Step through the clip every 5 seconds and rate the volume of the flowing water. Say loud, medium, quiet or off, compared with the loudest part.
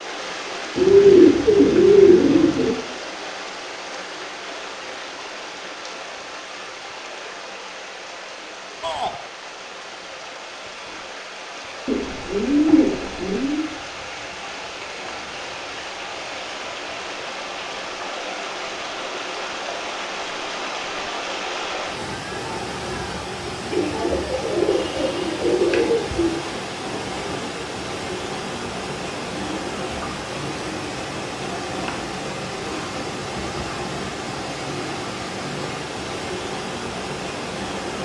loud, medium, medium, loud, loud, loud, loud, loud.